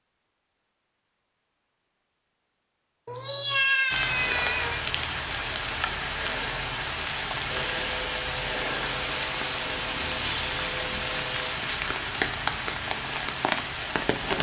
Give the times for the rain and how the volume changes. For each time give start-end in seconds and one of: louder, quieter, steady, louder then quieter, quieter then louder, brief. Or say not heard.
3.9-14.3 steady.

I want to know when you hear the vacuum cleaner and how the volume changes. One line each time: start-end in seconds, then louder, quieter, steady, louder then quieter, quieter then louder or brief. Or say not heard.
7.5-11.6 steady.